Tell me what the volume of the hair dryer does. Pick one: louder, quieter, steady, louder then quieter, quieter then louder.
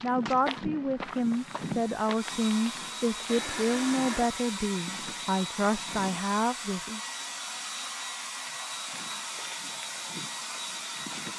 steady.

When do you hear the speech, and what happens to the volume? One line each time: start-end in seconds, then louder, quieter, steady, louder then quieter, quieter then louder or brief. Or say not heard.
0.0-7.0 steady.